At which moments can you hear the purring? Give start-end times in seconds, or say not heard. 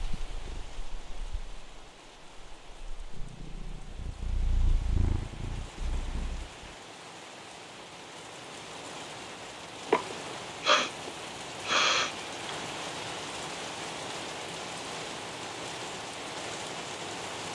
0.0-6.7.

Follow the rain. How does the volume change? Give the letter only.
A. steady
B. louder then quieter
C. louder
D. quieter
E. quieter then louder
C.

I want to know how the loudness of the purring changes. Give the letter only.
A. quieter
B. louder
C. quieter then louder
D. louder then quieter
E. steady
C.